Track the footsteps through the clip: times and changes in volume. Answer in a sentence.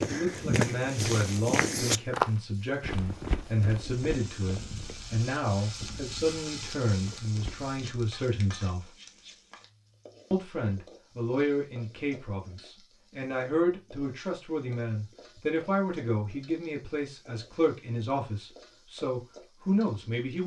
You can hear the footsteps from 0.0 to 7.8 s, getting quieter.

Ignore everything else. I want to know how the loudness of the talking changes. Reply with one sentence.
The loudness of the talking stays about the same.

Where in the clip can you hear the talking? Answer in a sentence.
The talking can be heard from 0.1 to 8.8 s and from 10.3 to 20.4 s.